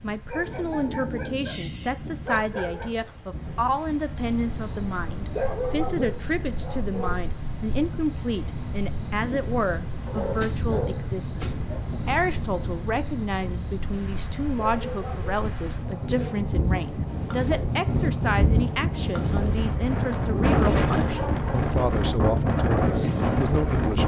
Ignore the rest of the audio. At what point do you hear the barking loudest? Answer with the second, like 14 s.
6 s.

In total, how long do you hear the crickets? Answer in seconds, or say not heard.
20 s.